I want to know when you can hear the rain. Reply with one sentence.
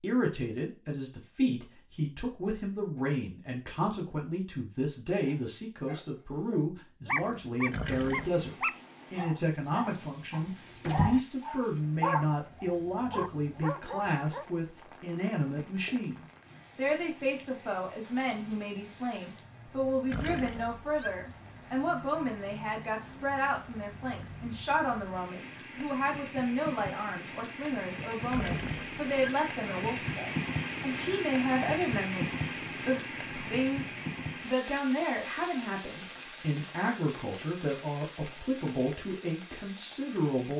You can hear the rain from 7.2 to 40.5 s.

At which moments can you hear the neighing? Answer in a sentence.
The neighing can be heard from 7.7 to 8.4 s, from 20.1 to 21.1 s and from 28.3 to 29.3 s.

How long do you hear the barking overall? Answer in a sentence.
You can hear the barking for 9 seconds altogether.